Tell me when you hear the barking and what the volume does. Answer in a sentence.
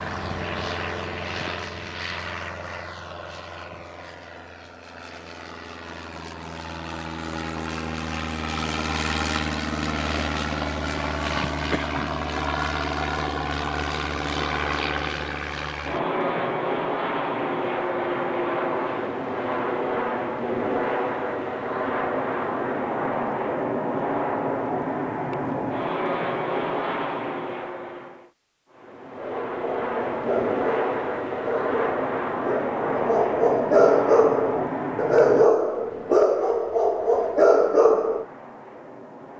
The barking can be heard from 29.1 to 38.2 s, getting louder.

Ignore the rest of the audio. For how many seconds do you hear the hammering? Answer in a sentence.
The hammering can't be heard in this clip.